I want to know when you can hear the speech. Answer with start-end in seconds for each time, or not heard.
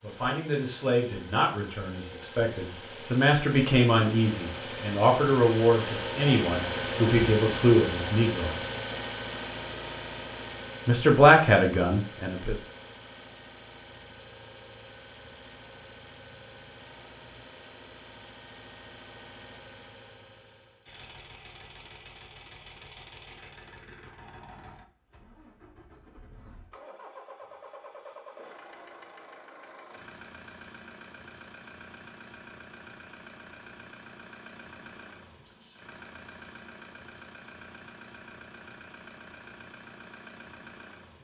0.0-8.6, 10.8-12.6.